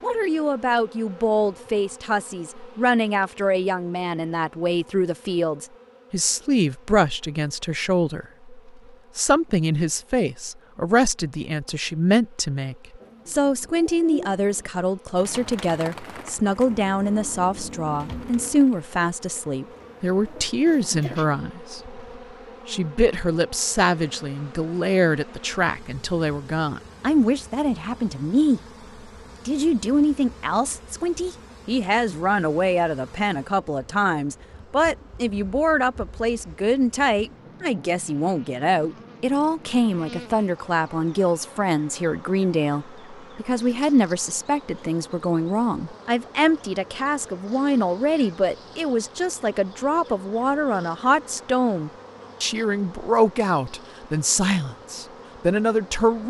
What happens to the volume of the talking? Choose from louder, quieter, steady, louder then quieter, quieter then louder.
steady.